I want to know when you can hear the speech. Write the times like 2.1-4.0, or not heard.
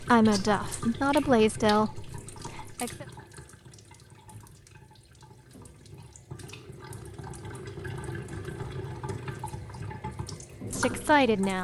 0.0-3.0, 10.7-11.5.